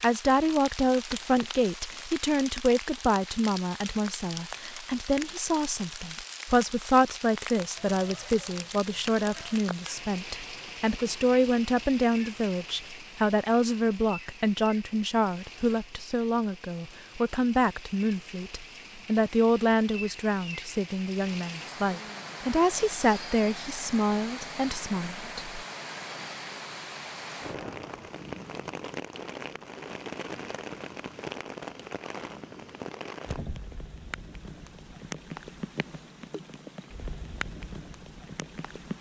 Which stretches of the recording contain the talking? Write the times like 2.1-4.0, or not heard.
0.0-25.6.